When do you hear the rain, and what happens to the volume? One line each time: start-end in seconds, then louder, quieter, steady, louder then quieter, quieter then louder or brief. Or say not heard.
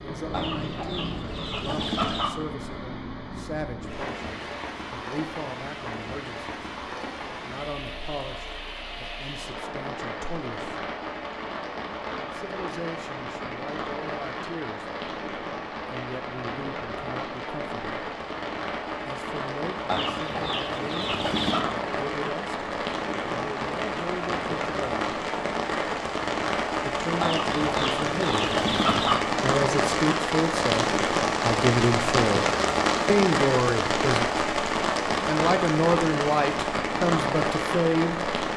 0.0-38.5 louder.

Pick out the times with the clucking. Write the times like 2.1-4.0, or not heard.
0.3-2.3, 19.9-21.6, 27.2-29.2.